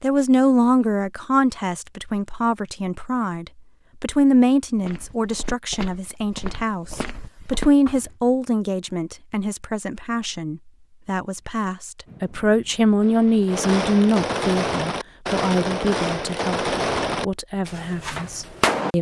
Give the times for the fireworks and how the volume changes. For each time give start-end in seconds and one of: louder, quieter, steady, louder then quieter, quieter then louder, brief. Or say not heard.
12.1-18.9 louder then quieter.